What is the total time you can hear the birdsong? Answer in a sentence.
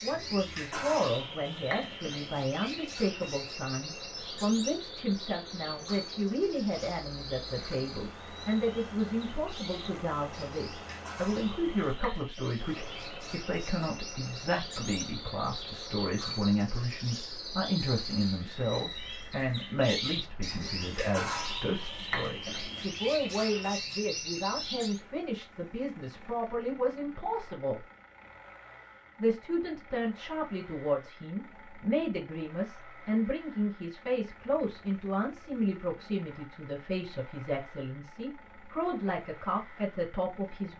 You can hear the birdsong for 25 seconds altogether.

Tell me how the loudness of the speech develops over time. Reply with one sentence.
The loudness of the speech stays about the same.